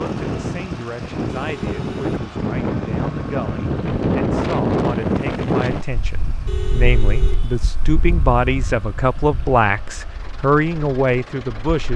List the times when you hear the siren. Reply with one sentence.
You can't hear the siren here.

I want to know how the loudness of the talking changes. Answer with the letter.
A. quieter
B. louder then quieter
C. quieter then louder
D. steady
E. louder
E.